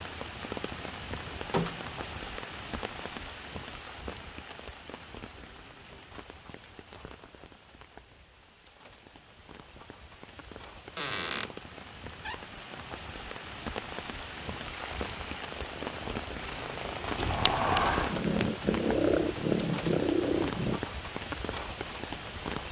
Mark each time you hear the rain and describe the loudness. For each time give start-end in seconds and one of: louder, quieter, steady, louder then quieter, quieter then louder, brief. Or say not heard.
0.0-22.6 quieter then louder.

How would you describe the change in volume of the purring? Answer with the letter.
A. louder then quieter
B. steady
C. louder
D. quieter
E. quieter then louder
C.